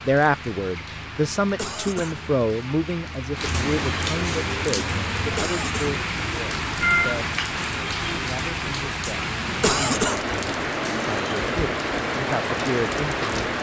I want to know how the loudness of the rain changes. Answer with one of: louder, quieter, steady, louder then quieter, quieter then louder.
louder.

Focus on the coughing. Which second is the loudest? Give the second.
10 s.